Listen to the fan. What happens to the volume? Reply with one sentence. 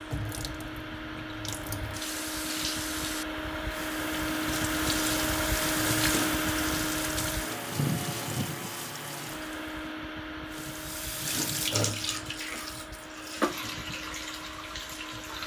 The loudness of the fan goes up, then down.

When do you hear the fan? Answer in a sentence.
You can hear the fan from 0.0 to 15.4 s.